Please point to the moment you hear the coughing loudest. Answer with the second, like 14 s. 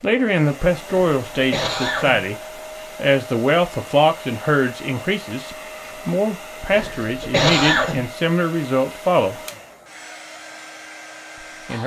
8 s.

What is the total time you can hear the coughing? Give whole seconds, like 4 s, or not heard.
3 s.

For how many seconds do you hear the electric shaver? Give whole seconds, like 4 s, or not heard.
not heard.